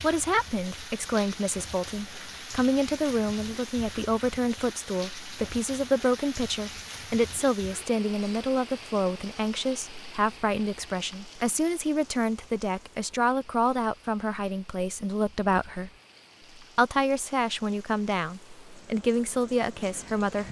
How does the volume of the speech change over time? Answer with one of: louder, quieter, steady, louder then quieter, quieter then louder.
steady.